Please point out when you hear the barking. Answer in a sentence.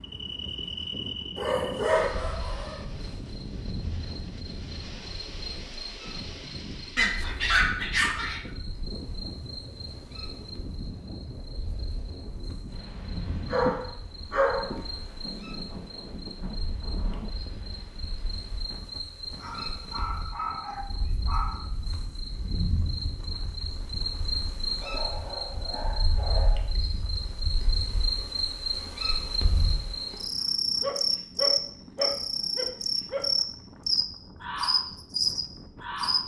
You can hear the barking from 1.4 to 2.9 s, from 7.0 to 8.4 s, from 13.5 to 14.8 s, from 19.4 to 21.7 s, from 24.8 to 26.7 s and from 30.8 to 33.3 s.